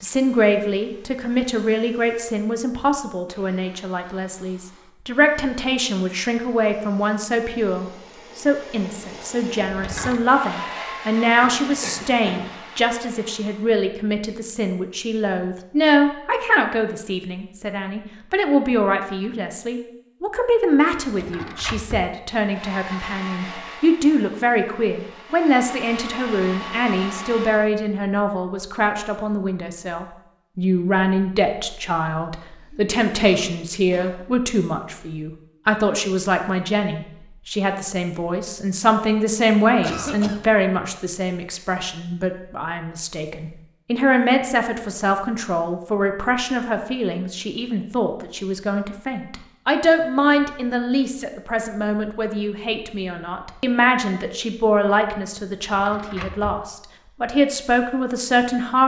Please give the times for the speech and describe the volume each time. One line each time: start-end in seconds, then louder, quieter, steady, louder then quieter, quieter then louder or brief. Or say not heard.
0.0-58.8 steady.